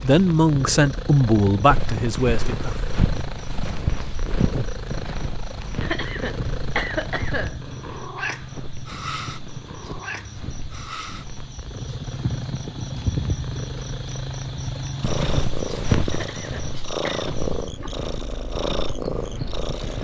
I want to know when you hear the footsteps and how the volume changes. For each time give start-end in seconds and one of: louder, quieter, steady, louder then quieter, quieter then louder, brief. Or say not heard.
1.6-11.4 quieter
15.0-20.0 quieter then louder.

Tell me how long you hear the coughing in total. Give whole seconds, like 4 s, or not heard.
3 s.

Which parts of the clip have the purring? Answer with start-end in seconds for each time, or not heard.
0.0-20.0.